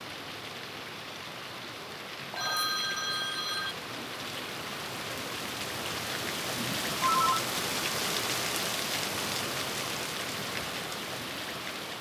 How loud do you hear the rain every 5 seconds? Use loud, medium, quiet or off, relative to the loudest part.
medium, loud, loud.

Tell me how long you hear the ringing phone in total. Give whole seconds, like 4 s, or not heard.
2 s.